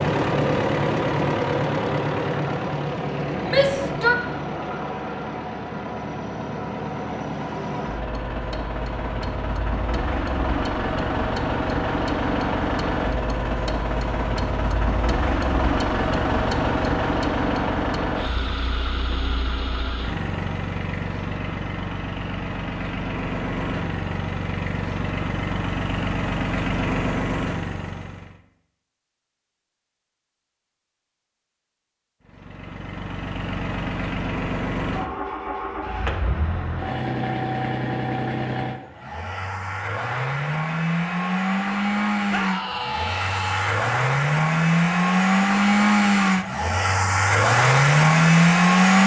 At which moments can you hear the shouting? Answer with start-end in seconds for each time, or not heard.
3.5-4.2, 42.3-43.9.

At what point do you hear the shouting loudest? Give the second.
4 s.